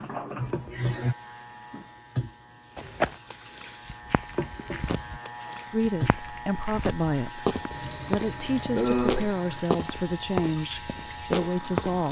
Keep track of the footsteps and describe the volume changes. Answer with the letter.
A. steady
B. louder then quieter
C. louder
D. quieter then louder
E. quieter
D.